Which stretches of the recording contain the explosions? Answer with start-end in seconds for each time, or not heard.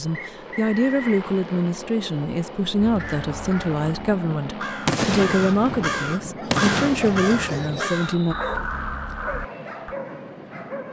4.8-7.8.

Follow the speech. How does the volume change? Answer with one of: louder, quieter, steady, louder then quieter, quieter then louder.
steady.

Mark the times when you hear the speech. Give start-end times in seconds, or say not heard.
0.0-8.3.